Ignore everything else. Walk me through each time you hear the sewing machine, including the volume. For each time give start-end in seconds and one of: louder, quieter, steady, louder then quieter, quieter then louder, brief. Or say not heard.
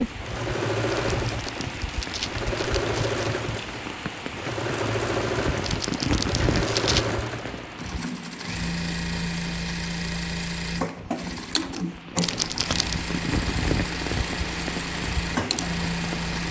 0.2-16.4 steady.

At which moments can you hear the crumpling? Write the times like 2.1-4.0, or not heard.
0.9-3.2, 5.6-7.1, 12.2-12.9.